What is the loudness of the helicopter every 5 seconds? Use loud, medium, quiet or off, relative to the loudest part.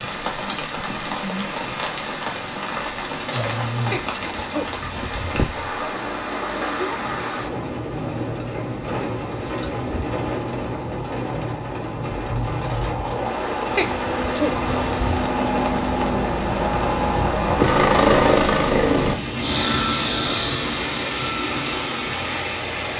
quiet, quiet, medium, loud, medium.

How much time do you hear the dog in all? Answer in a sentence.
You can hear the dog for 3 seconds altogether.